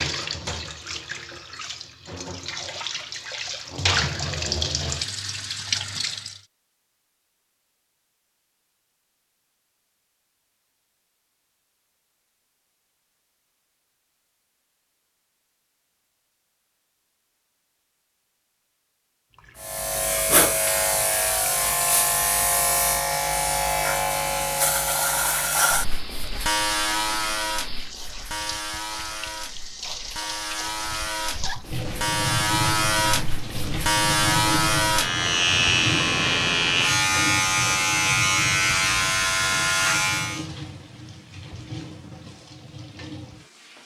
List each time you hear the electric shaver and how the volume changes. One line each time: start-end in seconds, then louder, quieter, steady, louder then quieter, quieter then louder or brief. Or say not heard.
19.6-40.5 quieter then louder.